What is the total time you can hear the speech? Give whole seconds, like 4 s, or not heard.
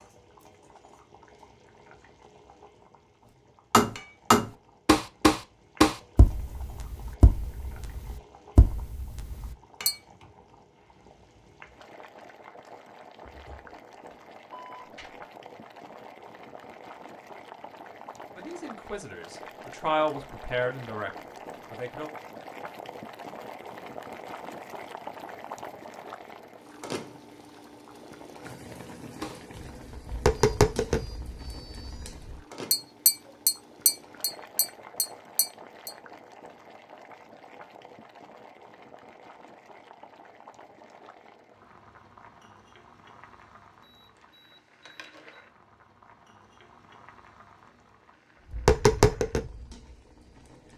3 s.